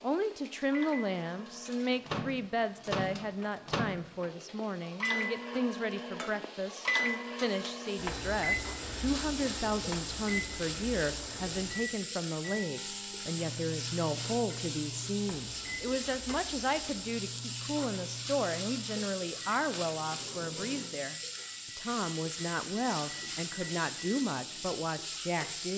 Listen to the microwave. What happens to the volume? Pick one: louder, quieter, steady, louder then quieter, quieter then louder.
quieter.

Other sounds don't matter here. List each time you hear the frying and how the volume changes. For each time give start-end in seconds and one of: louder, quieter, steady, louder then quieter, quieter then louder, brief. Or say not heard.
0.0-25.7 louder.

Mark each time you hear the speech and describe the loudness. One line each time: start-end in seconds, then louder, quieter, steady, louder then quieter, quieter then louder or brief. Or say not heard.
0.0-25.7 steady.